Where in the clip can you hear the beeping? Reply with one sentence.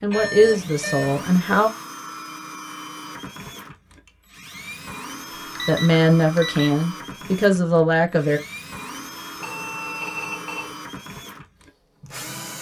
The beeping can be heard from 0.1 to 1.1 s, from 5.5 to 6.7 s and from 9.4 to 10.8 s.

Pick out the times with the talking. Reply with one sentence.
You can hear the talking from 0.0 to 1.7 s and from 5.7 to 8.4 s.